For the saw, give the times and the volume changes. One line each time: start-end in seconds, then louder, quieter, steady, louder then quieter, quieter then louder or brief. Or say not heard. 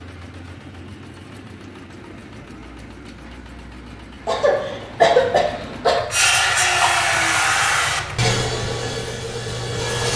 6.1-10.1 quieter.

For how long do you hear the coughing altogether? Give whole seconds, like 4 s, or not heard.
2 s.